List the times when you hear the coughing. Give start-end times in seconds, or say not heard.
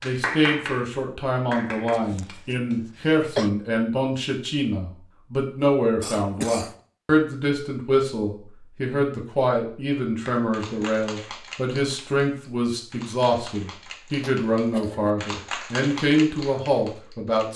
1.9-3.5, 6.0-6.8, 14.2-15.2.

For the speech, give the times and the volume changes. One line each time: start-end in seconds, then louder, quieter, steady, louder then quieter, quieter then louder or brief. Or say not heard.
0.0-17.5 steady.